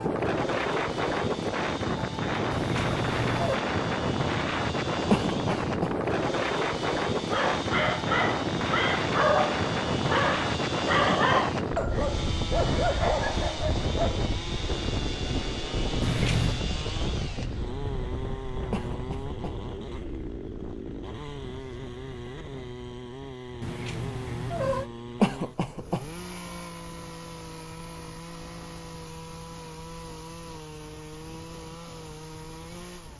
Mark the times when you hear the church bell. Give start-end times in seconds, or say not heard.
not heard.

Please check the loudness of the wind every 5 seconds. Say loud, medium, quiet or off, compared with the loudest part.
loud, loud, loud, medium, quiet, quiet, quiet.